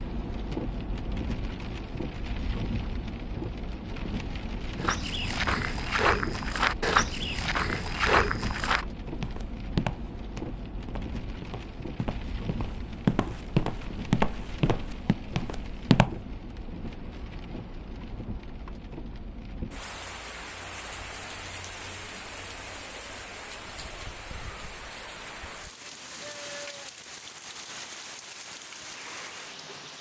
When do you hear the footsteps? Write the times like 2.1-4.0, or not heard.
4.8-16.1.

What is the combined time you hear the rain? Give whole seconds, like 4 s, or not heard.
30 s.